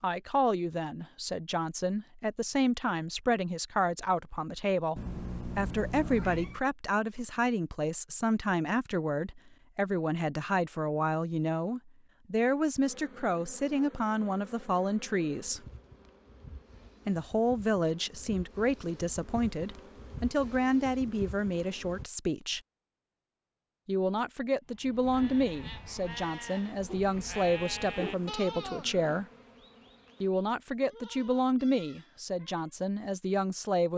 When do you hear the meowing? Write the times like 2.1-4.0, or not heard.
5.0-6.6.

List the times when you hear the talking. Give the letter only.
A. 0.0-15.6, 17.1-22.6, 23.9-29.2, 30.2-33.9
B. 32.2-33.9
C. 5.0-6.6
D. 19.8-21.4
A.